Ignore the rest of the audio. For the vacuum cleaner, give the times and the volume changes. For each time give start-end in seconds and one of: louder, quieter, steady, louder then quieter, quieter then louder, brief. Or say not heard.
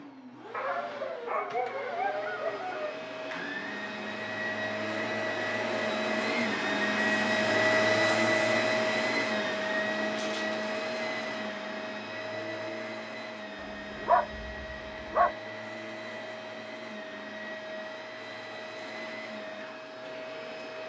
0.0-20.8 louder then quieter.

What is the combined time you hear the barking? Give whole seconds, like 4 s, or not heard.
4 s.